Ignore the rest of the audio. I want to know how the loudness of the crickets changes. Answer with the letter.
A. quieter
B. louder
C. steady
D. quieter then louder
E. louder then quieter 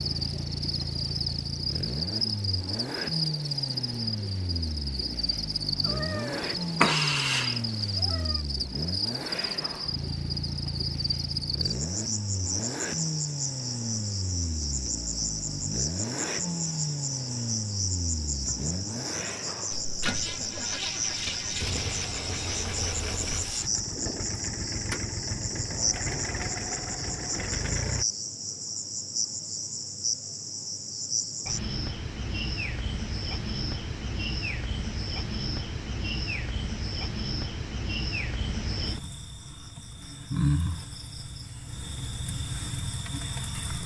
C.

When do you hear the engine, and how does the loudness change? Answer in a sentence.
You can hear the engine from 0.0 to 28.1 s, at a steady volume.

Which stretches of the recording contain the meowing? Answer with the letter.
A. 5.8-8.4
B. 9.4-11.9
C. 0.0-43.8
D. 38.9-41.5
A.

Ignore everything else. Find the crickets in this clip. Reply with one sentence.
You can hear the crickets from 0.0 to 43.8 s.